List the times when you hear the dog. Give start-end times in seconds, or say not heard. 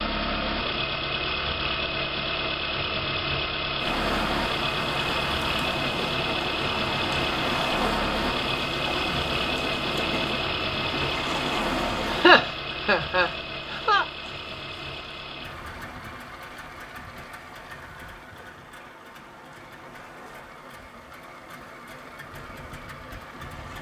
not heard.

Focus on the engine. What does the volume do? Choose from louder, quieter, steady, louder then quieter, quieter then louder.
quieter.